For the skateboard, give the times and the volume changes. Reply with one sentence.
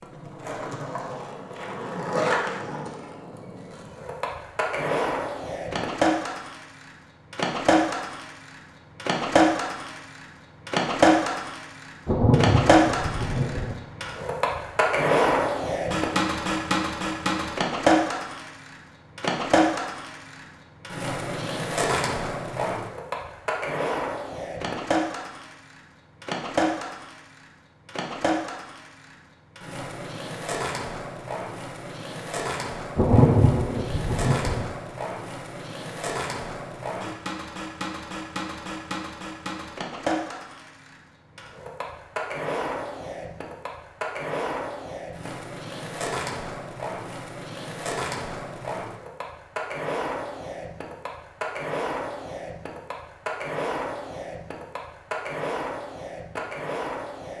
The skateboard can be heard from 0.0 to 57.3 s, getting quieter.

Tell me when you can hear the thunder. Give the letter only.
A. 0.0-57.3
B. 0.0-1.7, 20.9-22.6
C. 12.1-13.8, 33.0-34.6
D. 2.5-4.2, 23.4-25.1
C.